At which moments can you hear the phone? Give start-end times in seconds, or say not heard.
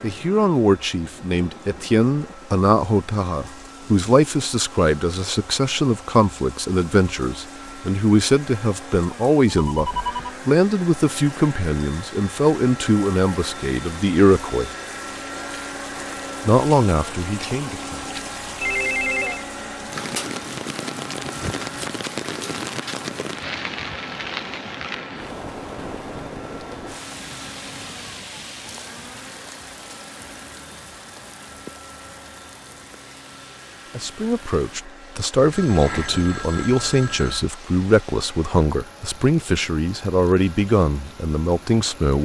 9.6-10.3, 18.6-19.4, 35.4-37.5.